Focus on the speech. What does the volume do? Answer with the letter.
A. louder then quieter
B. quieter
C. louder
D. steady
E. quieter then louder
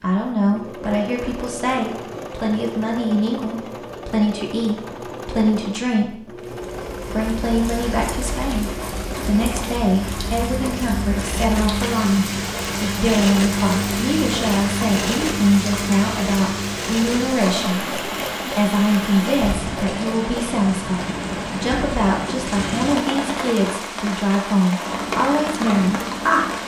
D.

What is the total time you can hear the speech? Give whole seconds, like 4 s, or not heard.
26 s.